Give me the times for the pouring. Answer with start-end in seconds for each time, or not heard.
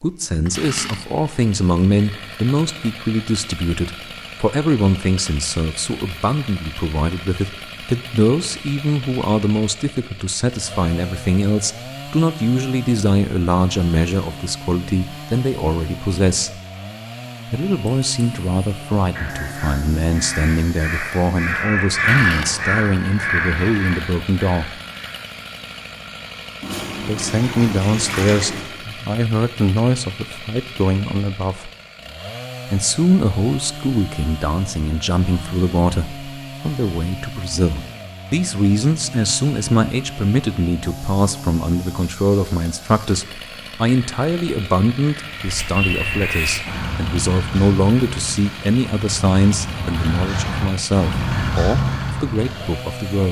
26.6-28.6.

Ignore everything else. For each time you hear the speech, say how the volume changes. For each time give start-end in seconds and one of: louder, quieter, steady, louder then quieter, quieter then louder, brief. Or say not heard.
0.0-16.6 steady
17.4-24.8 steady
27.1-31.7 steady
32.6-53.2 steady.